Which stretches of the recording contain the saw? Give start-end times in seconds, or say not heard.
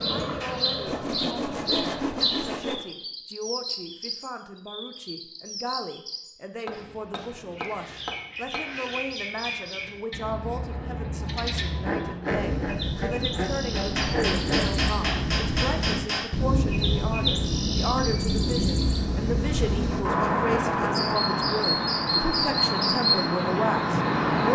0.8-2.9, 11.8-14.8, 19.7-21.1.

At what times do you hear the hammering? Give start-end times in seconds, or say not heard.
6.7-8.6, 13.8-16.3.